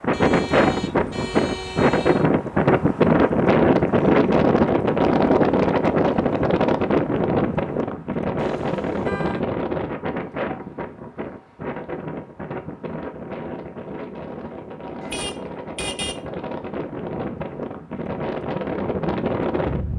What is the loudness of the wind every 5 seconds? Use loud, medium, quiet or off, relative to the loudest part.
loud, loud, quiet, medium.